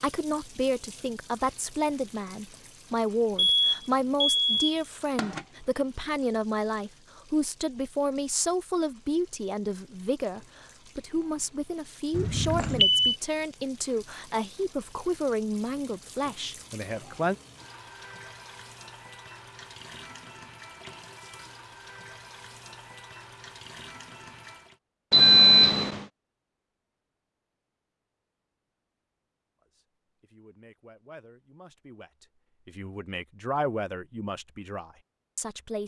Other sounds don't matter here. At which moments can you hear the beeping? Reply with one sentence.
The beeping can be heard from 3.4 to 5.4 s, from 12.1 to 13.2 s and from 25.1 to 26.1 s.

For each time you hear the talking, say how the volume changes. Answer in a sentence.
You can hear the talking from 0.0 to 17.4 s, at a steady volume; and from 29.6 to 35.8 s, getting louder then quieter.